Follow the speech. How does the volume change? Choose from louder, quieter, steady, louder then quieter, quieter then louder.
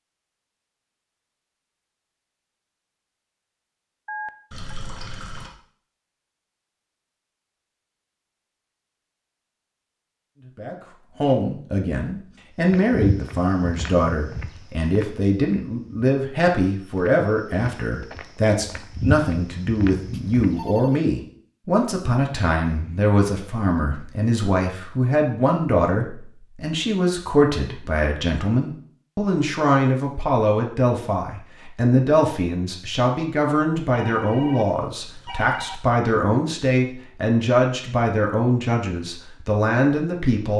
steady.